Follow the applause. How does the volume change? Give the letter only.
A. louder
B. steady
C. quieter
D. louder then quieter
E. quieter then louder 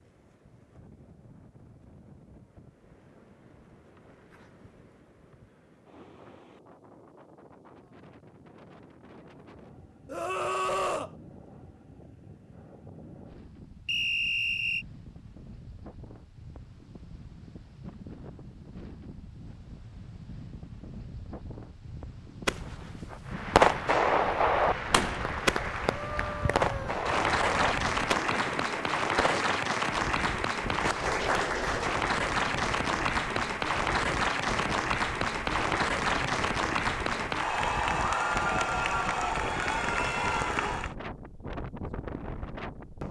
A.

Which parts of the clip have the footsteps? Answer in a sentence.
The footsteps can't be heard in this clip.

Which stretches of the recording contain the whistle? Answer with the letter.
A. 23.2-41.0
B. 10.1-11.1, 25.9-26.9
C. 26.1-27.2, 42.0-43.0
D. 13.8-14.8
D.